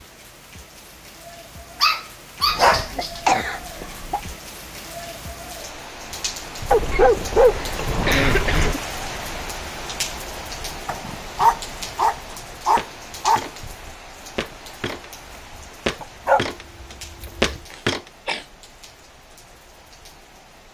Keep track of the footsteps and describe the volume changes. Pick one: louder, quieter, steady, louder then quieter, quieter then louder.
quieter then louder.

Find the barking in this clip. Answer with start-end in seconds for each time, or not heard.
1.8-3.2, 6.7-8.8, 10.8-13.5, 16.0-17.6.